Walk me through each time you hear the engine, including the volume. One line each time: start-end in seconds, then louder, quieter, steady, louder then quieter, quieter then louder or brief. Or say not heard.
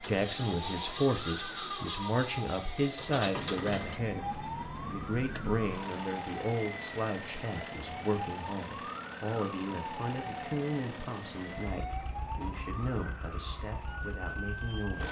0.0-15.0 quieter.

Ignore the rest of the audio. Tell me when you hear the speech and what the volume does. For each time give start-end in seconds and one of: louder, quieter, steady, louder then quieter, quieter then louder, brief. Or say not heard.
0.0-15.0 quieter.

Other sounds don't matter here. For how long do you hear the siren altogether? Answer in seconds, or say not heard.
15 s.